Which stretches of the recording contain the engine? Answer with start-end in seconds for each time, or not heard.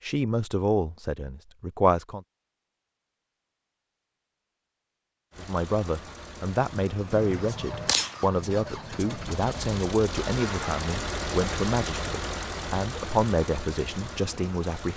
5.3-14.9.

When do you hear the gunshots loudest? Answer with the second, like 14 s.
8 s.